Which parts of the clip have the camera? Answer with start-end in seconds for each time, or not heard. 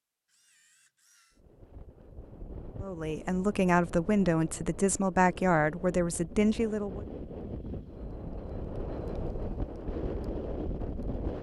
0.2-1.4.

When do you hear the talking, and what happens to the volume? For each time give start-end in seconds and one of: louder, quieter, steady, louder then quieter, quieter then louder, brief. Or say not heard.
2.8-7.0 steady.